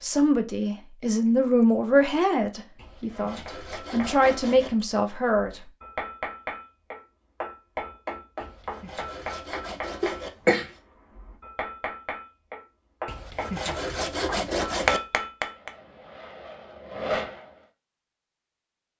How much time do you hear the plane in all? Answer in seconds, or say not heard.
2 s.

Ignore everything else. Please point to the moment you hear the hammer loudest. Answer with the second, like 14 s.
15 s.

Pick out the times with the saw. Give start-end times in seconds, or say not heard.
2.8-4.7, 8.4-10.3, 13.1-15.0.